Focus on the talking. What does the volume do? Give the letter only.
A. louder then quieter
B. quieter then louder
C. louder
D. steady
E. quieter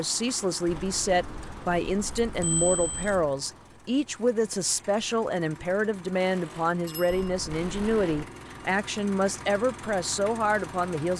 D.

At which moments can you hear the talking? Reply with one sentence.
You can hear the talking from 0.0 to 11.1 s.